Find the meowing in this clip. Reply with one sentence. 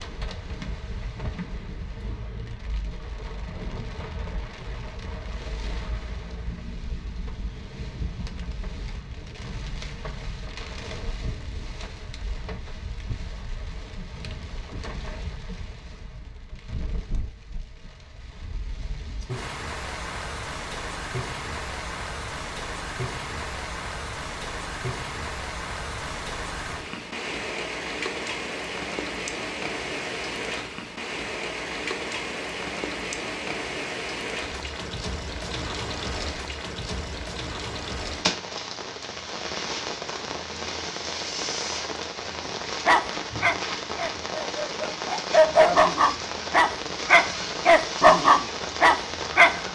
You can't hear the meowing here.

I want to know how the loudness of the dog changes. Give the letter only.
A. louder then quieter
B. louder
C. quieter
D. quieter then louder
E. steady
B.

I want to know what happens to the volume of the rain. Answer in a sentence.
The loudness of the rain goes up.